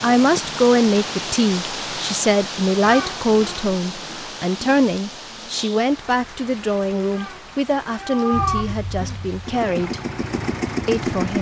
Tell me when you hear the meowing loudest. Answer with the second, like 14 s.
8 s.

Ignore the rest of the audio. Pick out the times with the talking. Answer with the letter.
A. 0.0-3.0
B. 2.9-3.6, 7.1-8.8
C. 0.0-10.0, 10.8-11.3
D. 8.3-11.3
C.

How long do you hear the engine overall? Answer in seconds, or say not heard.
3 s.